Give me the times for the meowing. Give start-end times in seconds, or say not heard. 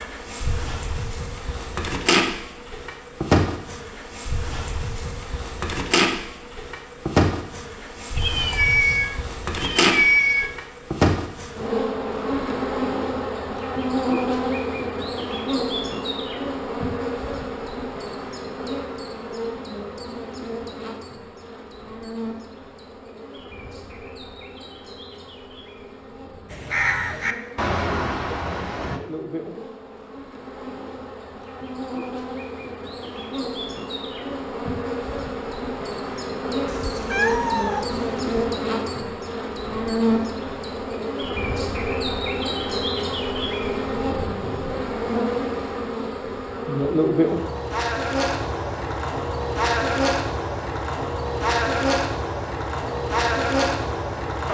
8.2-10.6, 36.6-38.4.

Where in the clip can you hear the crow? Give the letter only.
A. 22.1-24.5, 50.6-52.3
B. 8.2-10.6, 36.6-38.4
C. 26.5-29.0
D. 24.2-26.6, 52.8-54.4
C.